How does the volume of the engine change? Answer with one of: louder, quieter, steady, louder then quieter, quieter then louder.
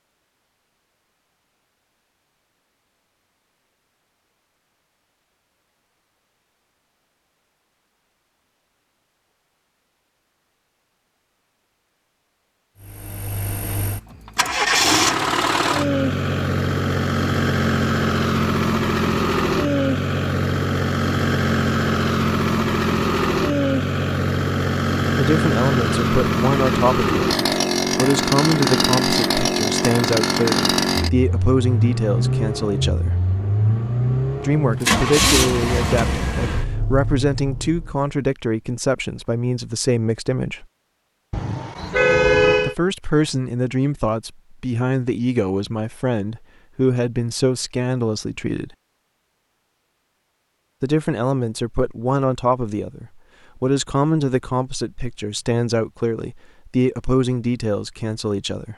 steady.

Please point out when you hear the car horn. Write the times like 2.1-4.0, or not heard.
41.3-42.8.